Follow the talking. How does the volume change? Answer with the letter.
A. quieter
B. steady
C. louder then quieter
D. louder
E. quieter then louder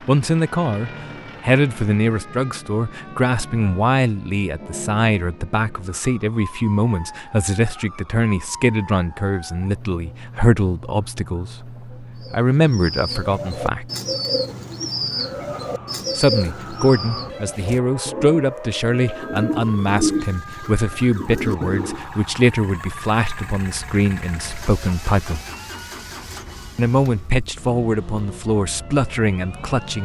B.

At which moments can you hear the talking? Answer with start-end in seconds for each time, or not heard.
0.1-13.8, 16.1-25.4, 26.8-30.0.